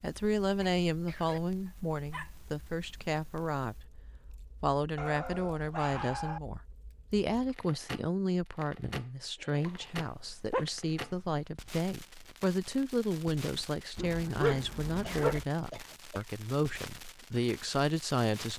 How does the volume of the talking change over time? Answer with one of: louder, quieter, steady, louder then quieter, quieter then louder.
steady.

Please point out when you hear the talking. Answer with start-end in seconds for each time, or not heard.
0.0-18.5.